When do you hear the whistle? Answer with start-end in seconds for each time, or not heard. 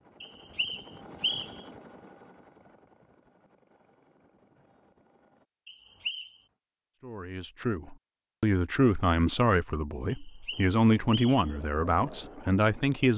0.2-1.6, 5.7-6.3, 10.1-11.6.